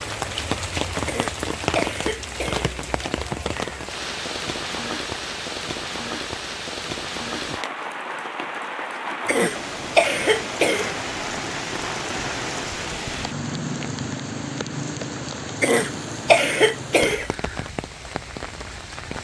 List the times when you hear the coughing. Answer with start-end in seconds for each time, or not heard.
1.1-2.7, 9.2-10.9, 15.6-17.3.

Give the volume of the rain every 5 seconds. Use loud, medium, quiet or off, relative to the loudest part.
loud, loud, loud, medium.